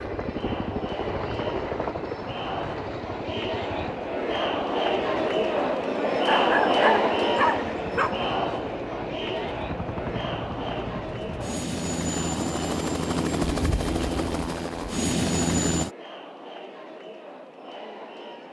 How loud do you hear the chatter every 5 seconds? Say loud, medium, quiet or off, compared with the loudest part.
medium, loud, medium, quiet.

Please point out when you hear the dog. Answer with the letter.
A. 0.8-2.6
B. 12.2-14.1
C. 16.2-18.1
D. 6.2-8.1
D.